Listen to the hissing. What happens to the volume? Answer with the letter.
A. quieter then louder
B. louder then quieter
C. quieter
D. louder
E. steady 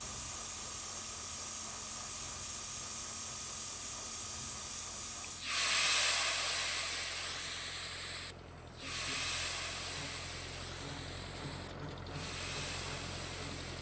B.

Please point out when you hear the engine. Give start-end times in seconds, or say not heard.
0.2-13.7.